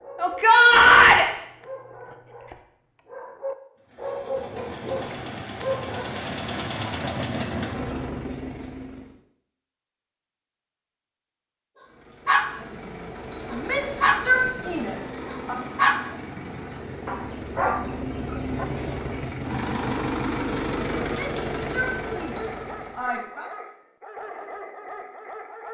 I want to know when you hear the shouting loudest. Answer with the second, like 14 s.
1 s.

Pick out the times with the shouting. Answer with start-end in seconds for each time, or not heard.
0.2-1.2, 13.5-15.6, 21.1-23.5.